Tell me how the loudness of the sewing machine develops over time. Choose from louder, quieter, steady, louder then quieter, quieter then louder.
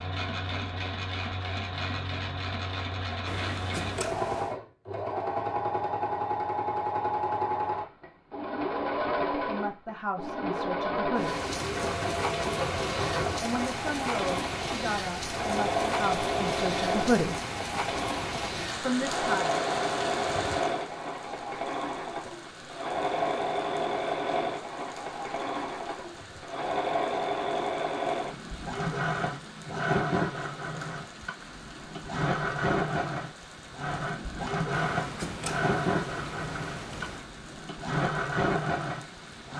steady.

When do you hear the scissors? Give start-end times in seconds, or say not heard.
3.2-4.5, 34.7-37.3.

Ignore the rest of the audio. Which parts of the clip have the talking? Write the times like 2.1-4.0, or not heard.
9.3-11.4, 13.4-17.4, 18.8-19.5.